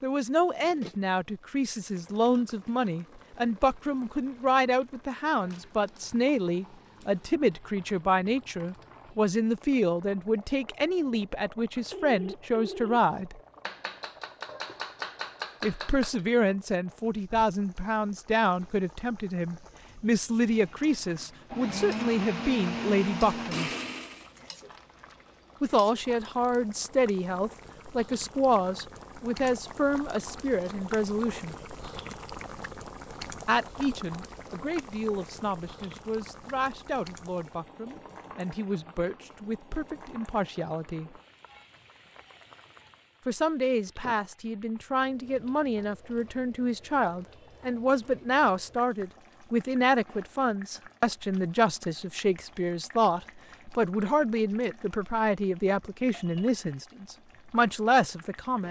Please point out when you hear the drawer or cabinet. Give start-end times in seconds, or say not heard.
not heard.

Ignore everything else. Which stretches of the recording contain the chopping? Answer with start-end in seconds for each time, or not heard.
13.6-16.1.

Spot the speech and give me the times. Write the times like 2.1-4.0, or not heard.
0.0-13.4, 15.6-23.7, 25.6-31.6, 33.5-41.1, 43.2-58.6.